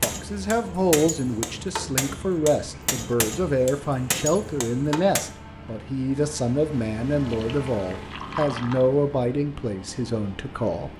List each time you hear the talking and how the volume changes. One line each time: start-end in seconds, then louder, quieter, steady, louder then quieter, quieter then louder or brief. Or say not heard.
0.0-10.9 steady.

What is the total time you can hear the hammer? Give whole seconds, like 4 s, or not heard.
5 s.